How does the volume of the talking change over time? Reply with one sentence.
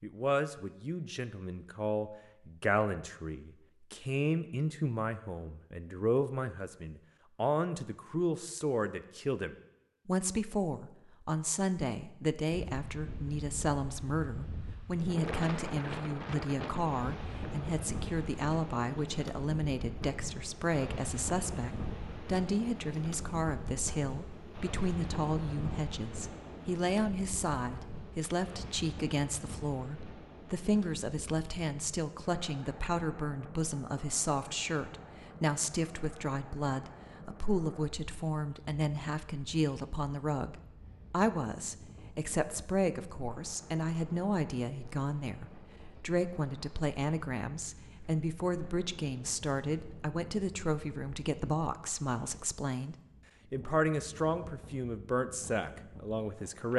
The volume of the talking stays about the same.